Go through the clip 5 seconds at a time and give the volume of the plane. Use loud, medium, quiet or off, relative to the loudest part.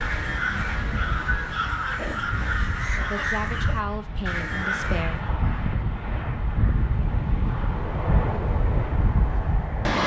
medium, loud.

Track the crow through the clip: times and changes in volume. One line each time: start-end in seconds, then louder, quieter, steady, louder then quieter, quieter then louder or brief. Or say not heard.
0.0-5.3 steady.